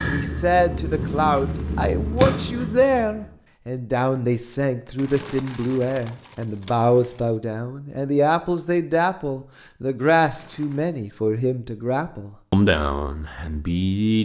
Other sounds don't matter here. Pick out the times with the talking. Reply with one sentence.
You can hear the talking from 0.0 to 14.2 s.